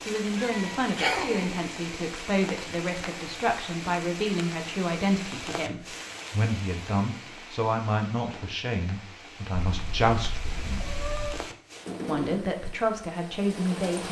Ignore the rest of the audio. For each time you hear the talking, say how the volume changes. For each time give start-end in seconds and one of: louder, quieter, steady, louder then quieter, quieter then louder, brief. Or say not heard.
0.0-10.9 steady
12.1-14.0 brief.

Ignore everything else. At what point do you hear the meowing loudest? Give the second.
1 s.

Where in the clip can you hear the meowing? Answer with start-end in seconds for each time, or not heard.
0.3-1.6, 9.7-11.5.